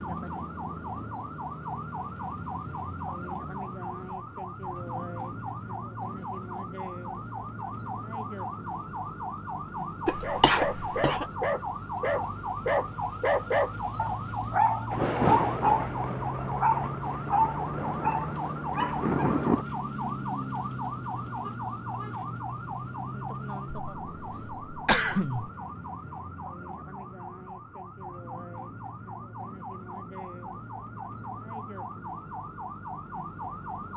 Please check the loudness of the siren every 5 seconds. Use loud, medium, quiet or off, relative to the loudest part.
loud, loud, loud, loud, loud, medium, medium.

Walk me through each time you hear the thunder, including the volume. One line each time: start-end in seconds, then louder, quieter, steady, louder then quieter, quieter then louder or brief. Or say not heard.
14.9-19.6 quieter then louder.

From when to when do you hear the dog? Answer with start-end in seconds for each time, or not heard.
10.2-19.4.